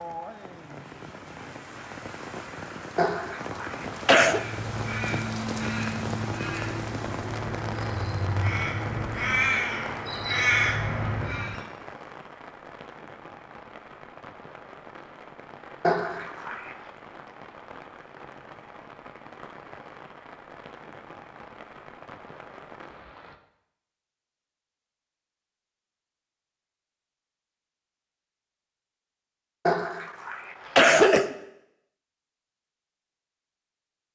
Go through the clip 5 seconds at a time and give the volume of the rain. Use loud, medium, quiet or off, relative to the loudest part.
loud, loud, medium, medium, medium, off, off.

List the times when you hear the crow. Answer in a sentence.
You can hear the crow from 4.2 to 11.6 s.